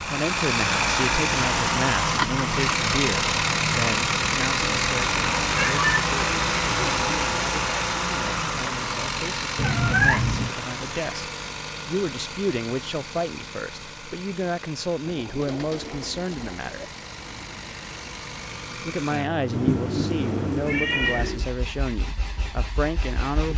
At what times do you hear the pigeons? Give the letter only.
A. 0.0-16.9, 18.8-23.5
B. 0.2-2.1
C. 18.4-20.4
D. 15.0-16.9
D.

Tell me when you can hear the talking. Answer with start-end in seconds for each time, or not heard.
0.0-16.9, 18.8-23.5.